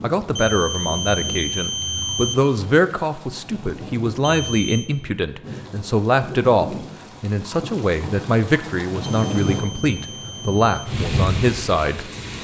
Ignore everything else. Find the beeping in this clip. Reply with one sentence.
The beeping can be heard from 0.3 to 2.4 s, from 4.2 to 4.9 s and from 9.0 to 10.9 s.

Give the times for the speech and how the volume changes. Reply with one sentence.
The speech can be heard from 0.0 to 12.1 s, at a steady volume.